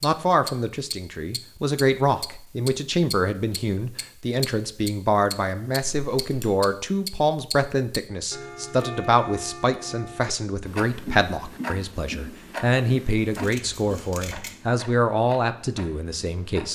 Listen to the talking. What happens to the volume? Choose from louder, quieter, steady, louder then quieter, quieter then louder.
steady.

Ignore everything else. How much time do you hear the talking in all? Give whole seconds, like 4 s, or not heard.
17 s.